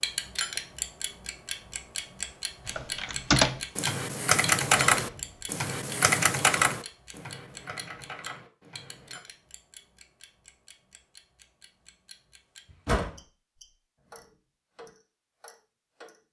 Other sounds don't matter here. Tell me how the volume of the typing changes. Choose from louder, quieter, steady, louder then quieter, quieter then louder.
quieter.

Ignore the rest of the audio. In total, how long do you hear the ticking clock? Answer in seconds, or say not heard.
16 s.